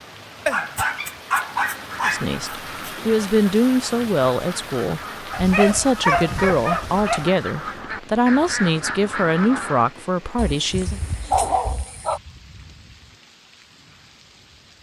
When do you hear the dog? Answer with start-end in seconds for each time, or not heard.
0.5-2.9, 5.3-7.3, 10.3-12.2.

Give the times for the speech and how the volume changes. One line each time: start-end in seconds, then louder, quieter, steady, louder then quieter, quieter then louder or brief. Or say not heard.
2.0-11.0 steady.